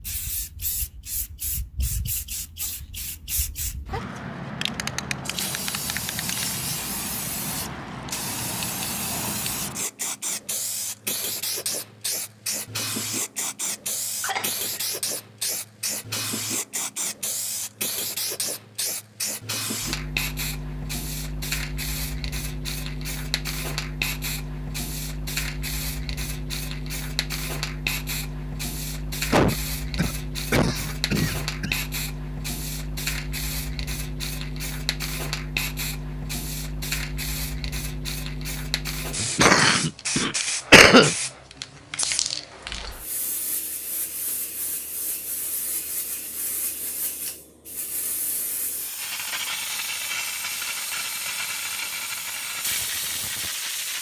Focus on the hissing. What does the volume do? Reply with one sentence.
The loudness of the hissing stays about the same.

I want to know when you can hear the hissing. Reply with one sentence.
You can hear the hissing from 0.0 to 53.9 s.